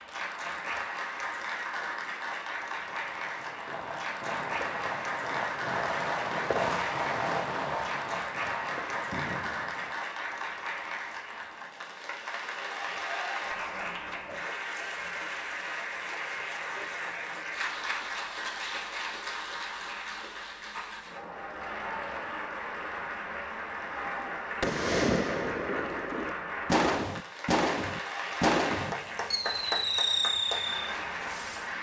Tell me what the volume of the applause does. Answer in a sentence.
The volume of the applause stays about the same.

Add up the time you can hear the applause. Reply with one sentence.
You can hear the applause for 32 seconds altogether.